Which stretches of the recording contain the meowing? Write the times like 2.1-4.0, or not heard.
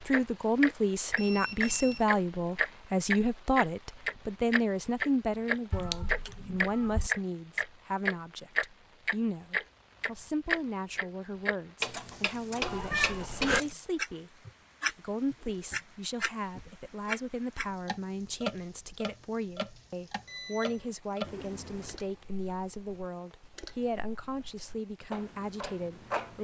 5.7-7.1, 12.6-13.6, 21.2-22.1.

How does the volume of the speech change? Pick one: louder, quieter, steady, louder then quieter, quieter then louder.
quieter.